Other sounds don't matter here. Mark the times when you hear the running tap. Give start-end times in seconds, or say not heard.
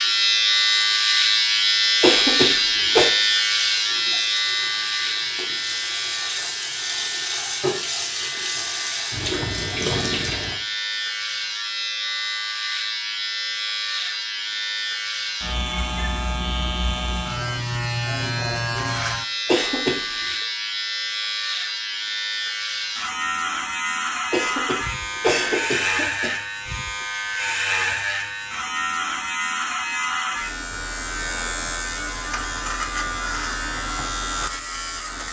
0.0-10.6.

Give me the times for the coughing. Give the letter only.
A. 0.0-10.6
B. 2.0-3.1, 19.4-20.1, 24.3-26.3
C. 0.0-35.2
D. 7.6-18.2
B.